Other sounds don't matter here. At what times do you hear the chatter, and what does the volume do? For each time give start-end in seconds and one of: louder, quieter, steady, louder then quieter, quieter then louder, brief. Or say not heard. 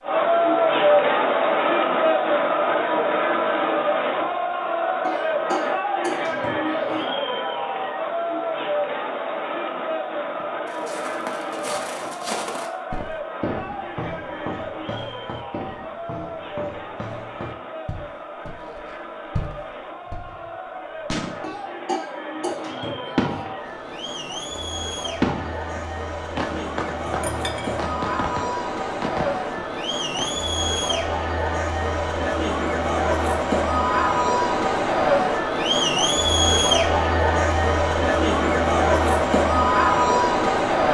0.0-40.8 quieter then louder.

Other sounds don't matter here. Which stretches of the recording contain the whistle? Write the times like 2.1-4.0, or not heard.
not heard.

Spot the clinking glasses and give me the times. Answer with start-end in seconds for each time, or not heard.
27.1-27.9.